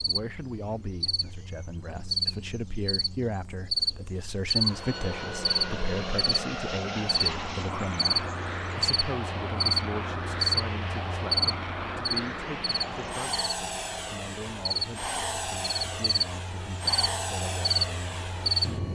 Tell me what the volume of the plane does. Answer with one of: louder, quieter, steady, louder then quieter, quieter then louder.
steady.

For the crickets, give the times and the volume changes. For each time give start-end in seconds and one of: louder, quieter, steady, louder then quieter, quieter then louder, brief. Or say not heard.
0.0-18.8 steady.